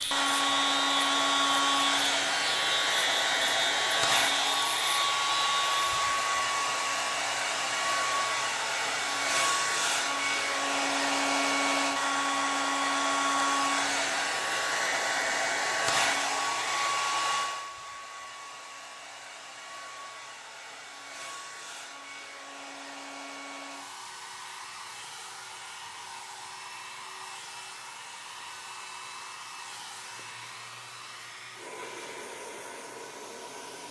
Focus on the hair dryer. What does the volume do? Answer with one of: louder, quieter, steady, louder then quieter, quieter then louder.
quieter.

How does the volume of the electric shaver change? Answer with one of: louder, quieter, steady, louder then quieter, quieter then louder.
steady.